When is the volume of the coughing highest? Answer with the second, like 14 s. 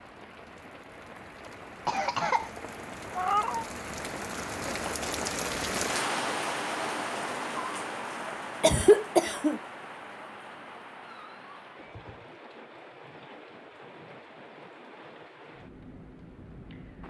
9 s.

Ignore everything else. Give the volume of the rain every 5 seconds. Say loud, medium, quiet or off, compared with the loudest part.
medium, loud, quiet, quiet.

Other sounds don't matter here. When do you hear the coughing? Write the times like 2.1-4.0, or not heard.
1.9-2.5, 8.6-9.6.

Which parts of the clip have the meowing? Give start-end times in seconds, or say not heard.
3.1-3.6, 11.8-12.2.